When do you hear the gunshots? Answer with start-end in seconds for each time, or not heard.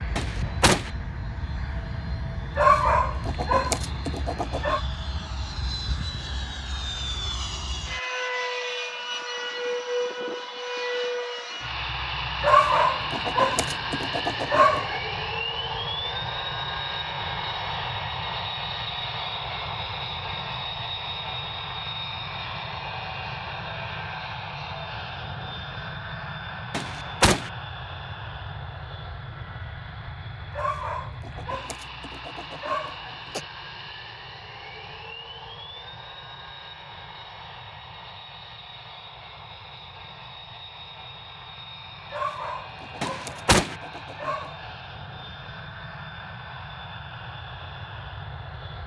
0.1-0.9, 26.7-27.5, 43.0-43.8.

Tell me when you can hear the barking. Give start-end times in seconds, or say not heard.
2.5-4.8, 12.4-15.0, 30.5-33.5, 42.1-44.8.